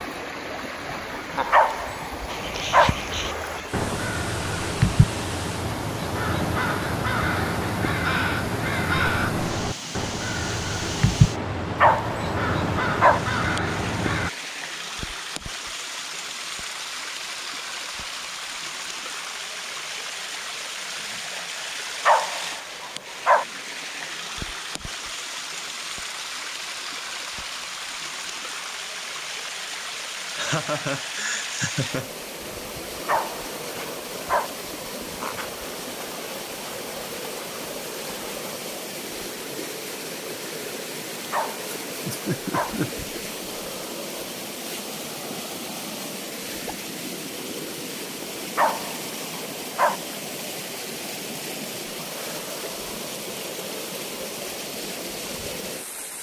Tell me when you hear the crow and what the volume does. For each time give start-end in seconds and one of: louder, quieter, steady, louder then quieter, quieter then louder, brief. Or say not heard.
2.2-14.3 steady.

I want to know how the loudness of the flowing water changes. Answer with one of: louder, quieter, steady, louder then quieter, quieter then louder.
steady.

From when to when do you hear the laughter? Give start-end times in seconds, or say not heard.
1.1-1.6, 30.4-32.1, 41.9-42.9.